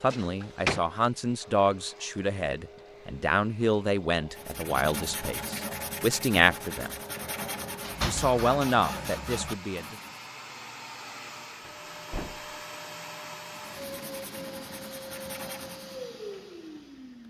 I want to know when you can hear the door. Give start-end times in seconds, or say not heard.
0.1-0.8, 7.2-8.4, 11.6-12.6.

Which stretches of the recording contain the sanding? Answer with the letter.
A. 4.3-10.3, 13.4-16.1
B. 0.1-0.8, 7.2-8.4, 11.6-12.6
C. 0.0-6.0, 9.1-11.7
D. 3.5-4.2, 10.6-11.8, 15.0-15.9
A.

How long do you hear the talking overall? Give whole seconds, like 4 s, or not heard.
9 s.